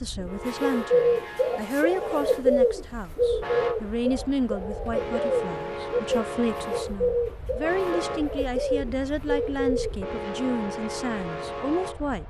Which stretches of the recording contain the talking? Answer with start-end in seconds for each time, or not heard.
0.0-12.2.